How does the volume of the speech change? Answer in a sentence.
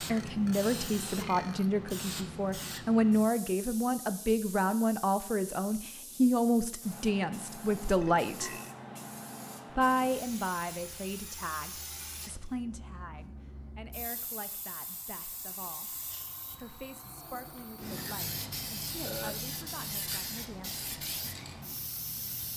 The loudness of the speech goes down.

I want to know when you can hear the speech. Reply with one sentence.
The speech can be heard from 0.1 to 8.6 s and from 9.8 to 20.9 s.